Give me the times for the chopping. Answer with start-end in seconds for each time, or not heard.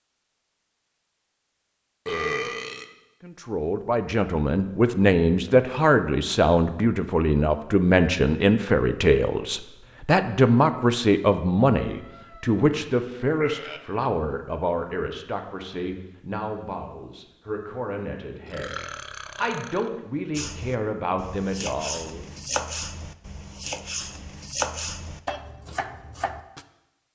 20.4-26.6.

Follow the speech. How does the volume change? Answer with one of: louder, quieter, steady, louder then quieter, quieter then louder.
quieter.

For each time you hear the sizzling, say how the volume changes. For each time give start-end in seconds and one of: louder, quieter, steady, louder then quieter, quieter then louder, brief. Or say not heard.
not heard.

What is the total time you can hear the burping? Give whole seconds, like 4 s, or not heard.
3 s.